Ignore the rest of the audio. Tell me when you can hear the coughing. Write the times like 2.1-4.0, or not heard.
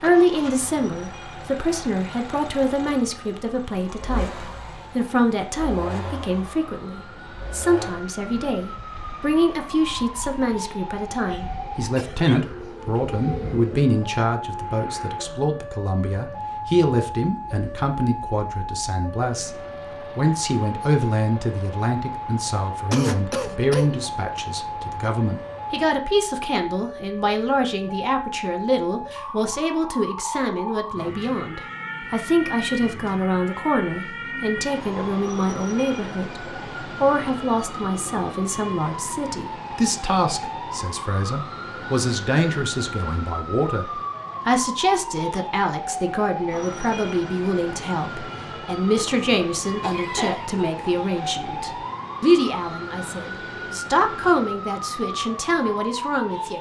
11.2-12.5, 22.9-24.1, 49.8-50.7.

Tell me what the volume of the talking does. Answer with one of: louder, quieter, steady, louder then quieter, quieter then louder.
steady.